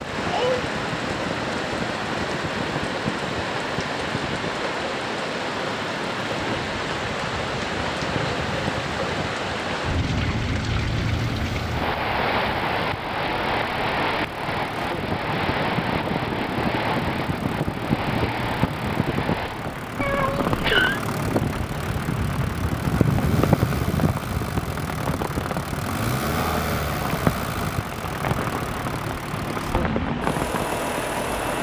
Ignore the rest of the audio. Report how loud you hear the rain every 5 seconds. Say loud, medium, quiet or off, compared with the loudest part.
loud, loud, loud, loud, medium, loud, loud.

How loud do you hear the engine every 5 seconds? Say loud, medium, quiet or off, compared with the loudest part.
medium, medium, medium, loud, loud, loud, loud.